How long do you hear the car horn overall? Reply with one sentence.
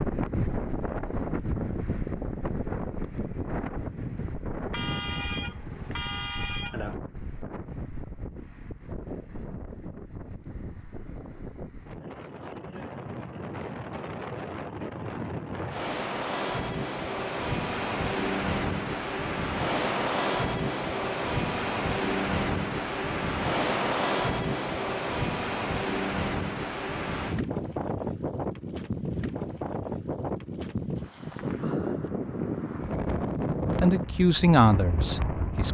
You can hear the car horn for 2 seconds altogether.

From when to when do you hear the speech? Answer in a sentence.
The speech can be heard from 33.8 to 35.6 s.